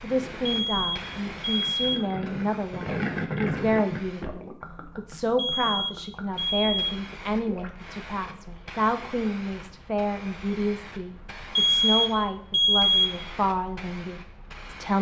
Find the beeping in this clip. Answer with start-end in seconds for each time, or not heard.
0.5-2.1, 5.3-7.0, 11.6-13.2.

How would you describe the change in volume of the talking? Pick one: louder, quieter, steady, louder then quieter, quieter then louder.
steady.